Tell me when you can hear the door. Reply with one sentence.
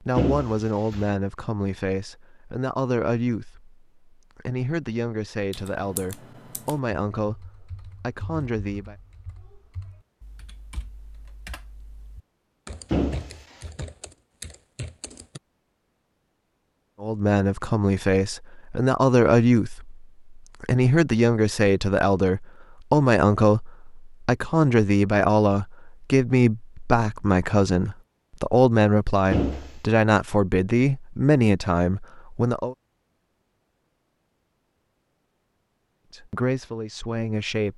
The door can be heard from 0.1 to 1.1 s, from 12.9 to 13.7 s and from 29.3 to 29.8 s.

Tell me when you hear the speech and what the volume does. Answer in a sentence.
The speech can be heard from 0.0 to 8.9 s, at a steady volume; from 17.0 to 32.8 s, at a steady volume; and briefly from 36.1 to 37.7 s.